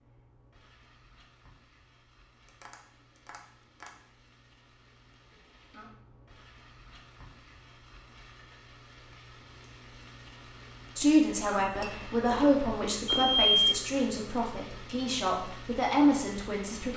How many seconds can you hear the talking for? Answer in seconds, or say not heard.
6 s.